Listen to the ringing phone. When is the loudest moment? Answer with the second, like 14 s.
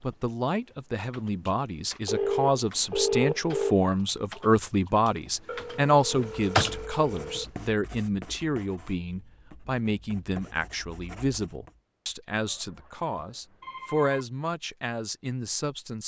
3 s.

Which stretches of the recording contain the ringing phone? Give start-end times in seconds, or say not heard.
2.0-3.8, 5.5-7.5, 12.4-14.2.